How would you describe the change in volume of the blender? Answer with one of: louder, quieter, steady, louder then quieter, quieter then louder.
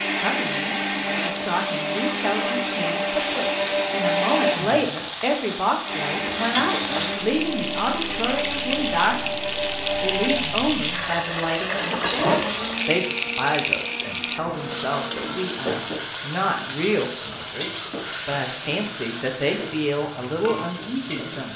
quieter.